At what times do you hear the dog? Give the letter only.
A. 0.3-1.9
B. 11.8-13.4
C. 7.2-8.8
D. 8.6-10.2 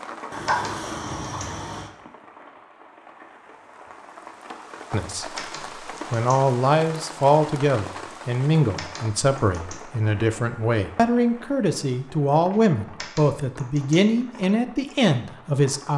A.